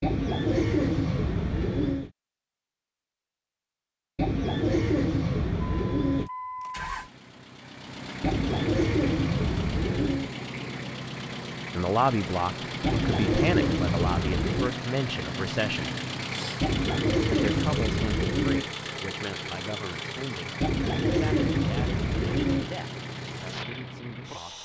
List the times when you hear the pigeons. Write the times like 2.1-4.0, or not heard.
0.0-2.1, 4.2-6.3, 8.2-10.3, 12.8-14.8, 16.6-18.6, 20.6-22.7.